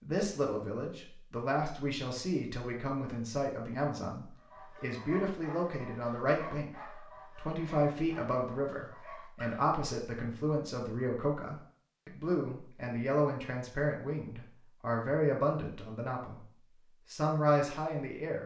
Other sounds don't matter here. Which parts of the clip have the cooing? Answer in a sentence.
The cooing can't be heard in this clip.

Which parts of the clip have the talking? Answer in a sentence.
The talking can be heard from 0.0 to 16.5 s and from 17.1 to 18.4 s.